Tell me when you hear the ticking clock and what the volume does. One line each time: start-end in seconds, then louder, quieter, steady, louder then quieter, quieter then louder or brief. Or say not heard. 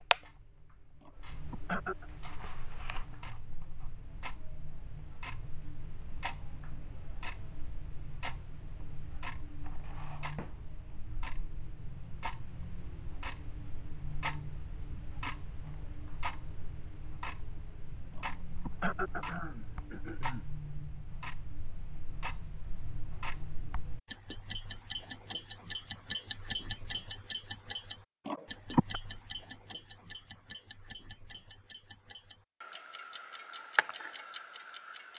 0.0-35.1 louder then quieter.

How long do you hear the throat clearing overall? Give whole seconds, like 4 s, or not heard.
4 s.